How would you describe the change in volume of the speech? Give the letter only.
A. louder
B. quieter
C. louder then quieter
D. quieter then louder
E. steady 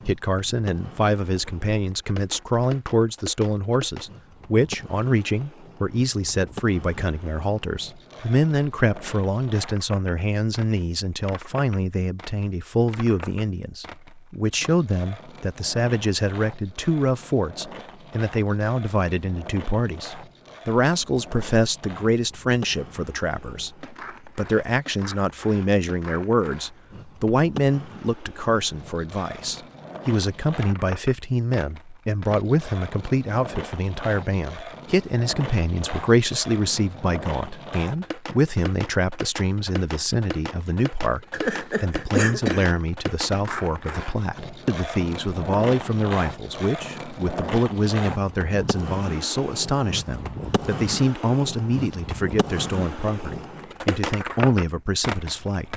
E.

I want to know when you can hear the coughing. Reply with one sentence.
You can hear the coughing from 41.3 to 42.7 s.